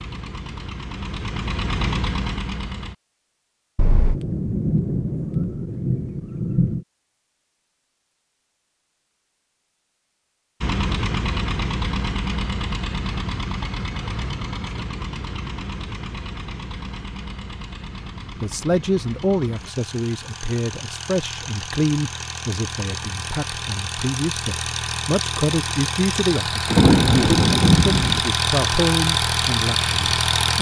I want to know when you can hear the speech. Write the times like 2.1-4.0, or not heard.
18.4-30.5.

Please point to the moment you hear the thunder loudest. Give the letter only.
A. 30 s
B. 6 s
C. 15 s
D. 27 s
D.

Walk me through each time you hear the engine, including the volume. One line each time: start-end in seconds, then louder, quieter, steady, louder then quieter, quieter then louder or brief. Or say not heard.
0.0-3.0 brief
10.6-30.5 quieter then louder.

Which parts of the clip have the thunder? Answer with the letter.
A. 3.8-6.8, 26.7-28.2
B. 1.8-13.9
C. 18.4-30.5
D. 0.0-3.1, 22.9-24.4
A.